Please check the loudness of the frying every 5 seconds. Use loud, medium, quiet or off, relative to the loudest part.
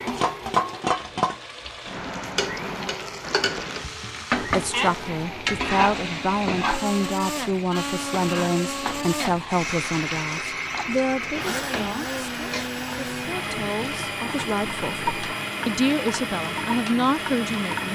loud, loud, medium, medium.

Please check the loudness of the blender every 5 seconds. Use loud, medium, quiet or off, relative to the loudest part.
medium, loud, loud, loud.